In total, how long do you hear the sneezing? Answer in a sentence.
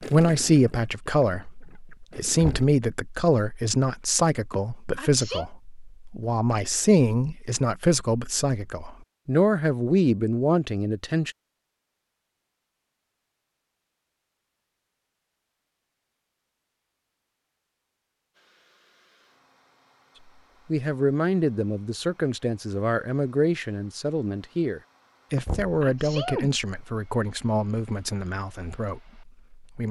The sneezing can be heard for 2 seconds in total.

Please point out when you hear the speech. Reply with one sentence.
You can hear the speech from 0.0 to 11.3 s and from 20.6 to 29.8 s.